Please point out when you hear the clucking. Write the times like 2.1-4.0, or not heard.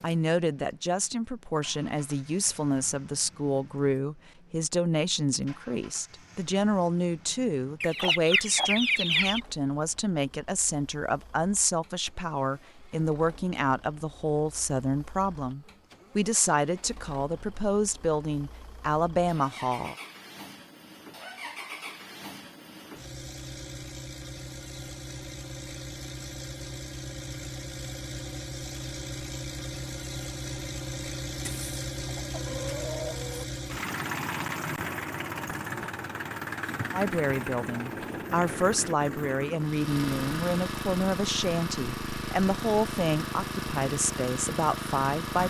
7.8-9.4, 31.4-33.5.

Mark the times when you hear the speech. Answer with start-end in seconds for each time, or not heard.
0.0-19.9, 36.9-45.4.